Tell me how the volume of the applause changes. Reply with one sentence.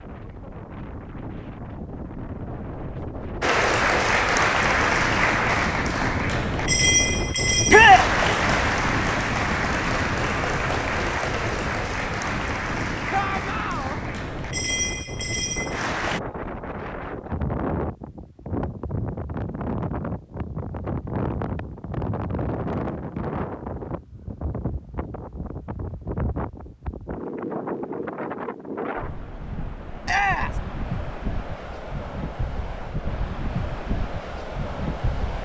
The volume of the applause goes down.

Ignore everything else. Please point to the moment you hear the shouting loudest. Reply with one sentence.
The volume of the shouting peaks at 8 seconds.